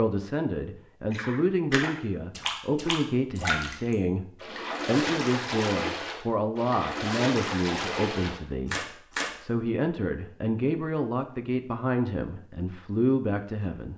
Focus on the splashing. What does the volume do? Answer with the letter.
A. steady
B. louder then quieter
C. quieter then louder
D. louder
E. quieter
A.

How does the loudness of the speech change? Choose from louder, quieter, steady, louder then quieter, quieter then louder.
steady.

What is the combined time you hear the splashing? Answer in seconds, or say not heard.
8 s.